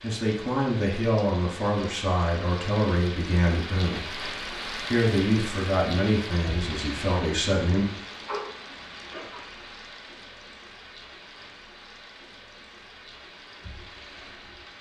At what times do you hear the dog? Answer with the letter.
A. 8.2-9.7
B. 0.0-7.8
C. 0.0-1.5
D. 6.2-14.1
A.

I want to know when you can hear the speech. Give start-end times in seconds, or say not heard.
0.0-7.8.